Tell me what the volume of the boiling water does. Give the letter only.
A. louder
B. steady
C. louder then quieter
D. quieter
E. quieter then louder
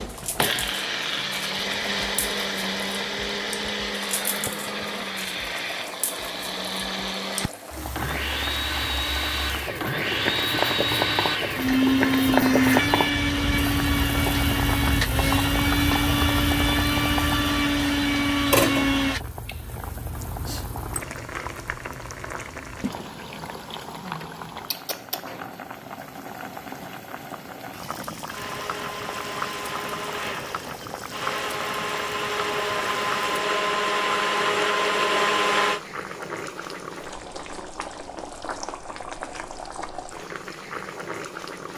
C.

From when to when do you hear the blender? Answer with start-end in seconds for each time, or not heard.
0.0-19.2, 28.3-35.8.